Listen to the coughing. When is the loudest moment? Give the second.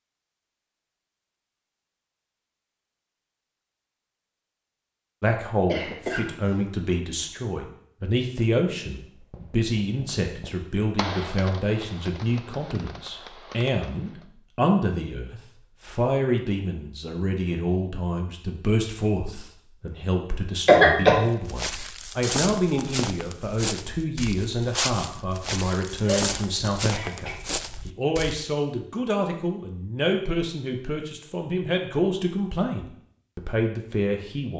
21 s.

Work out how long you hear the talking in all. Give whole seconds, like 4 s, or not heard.
29 s.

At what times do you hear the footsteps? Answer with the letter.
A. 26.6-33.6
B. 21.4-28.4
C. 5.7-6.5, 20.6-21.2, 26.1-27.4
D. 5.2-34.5
B.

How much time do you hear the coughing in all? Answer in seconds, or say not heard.
3 s.